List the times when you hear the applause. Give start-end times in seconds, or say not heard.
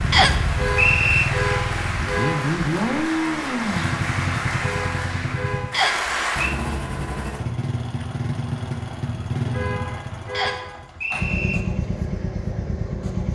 0.0-6.5.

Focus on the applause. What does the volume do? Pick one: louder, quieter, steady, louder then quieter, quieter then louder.
steady.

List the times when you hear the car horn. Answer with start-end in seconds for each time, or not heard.
0.6-2.5, 4.6-5.8, 9.5-10.9.